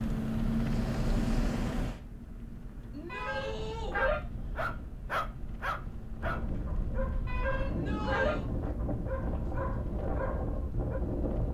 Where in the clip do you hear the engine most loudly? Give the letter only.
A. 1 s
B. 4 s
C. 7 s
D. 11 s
A.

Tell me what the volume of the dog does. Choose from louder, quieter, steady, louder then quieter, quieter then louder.
quieter.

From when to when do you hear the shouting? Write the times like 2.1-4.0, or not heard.
2.9-4.0, 7.7-8.4.